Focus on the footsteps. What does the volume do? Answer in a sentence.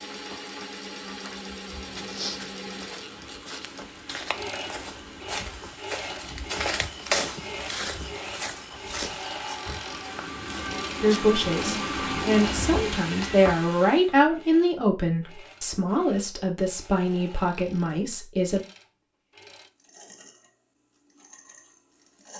The volume of the footsteps goes up, then down.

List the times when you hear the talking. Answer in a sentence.
The talking can be heard from 11.0 to 18.6 s.